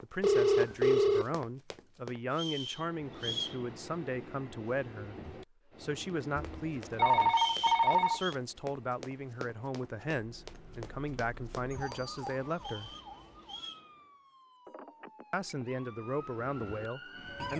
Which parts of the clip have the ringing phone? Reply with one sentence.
The ringing phone can be heard from 0.2 to 1.2 s, from 6.3 to 8.2 s and from 14.7 to 15.8 s.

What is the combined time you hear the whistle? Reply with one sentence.
The whistle can be heard for 4 seconds in total.